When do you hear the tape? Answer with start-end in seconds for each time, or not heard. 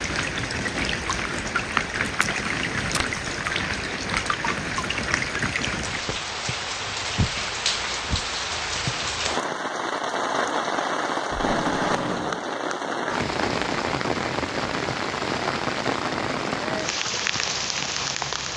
2.0-3.0, 11.3-12.4.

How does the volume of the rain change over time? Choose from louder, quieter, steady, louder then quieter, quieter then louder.
steady.